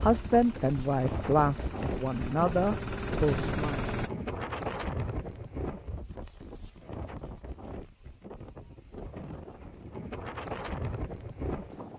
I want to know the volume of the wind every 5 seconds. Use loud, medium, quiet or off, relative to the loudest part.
loud, medium, loud.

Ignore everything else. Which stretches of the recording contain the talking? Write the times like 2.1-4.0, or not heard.
0.0-3.9.